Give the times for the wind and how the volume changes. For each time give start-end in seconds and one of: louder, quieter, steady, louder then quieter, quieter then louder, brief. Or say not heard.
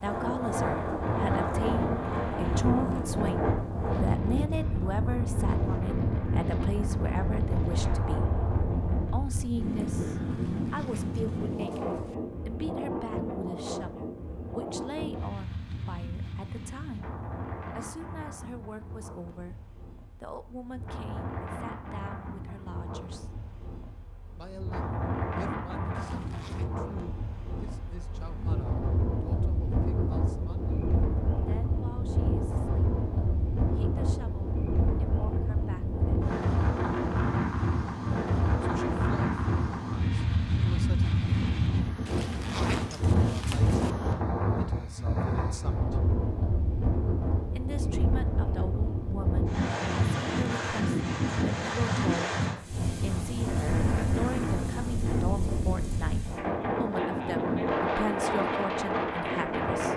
0.0-59.9 quieter then louder.